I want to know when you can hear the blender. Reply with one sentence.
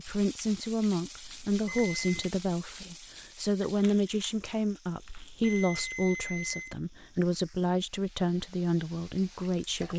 You can't hear the blender here.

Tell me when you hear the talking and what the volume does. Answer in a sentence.
The talking can be heard from 0.0 to 9.9 s, at a steady volume.